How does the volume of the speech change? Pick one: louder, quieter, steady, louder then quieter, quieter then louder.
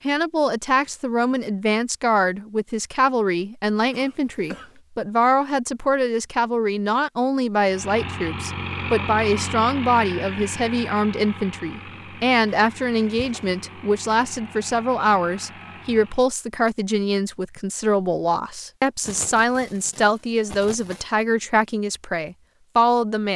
steady.